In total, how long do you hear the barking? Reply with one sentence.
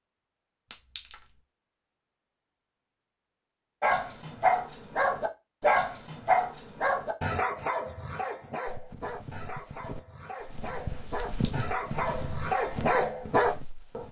You can hear the barking for 10 seconds altogether.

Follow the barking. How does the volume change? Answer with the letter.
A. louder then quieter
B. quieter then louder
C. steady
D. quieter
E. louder
B.